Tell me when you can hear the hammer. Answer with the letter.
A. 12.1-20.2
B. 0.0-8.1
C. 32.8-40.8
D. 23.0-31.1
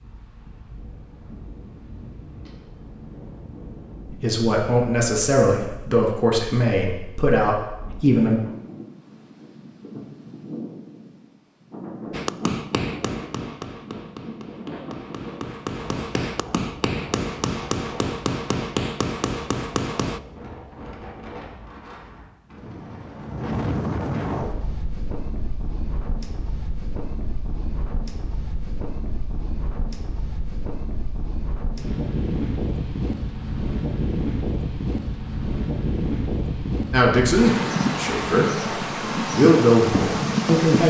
A.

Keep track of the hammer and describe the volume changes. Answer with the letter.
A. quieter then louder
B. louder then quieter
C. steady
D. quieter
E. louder
A.